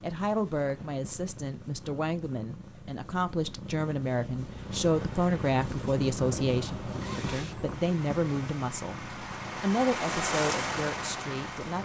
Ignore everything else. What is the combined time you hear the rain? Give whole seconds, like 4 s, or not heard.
7 s.